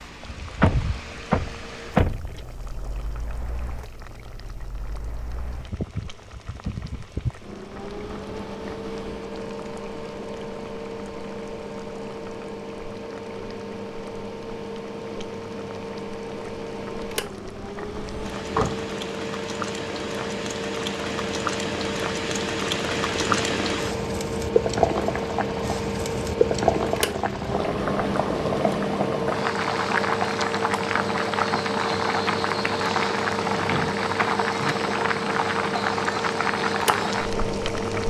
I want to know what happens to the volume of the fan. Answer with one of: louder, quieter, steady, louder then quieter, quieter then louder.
louder.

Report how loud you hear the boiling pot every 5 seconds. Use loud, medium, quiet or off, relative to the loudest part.
quiet, quiet, quiet, quiet, loud, loud, loud, loud.